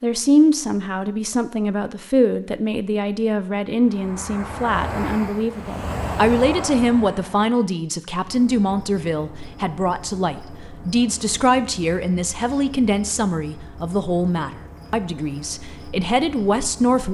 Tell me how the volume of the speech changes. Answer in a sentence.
The loudness of the speech stays about the same.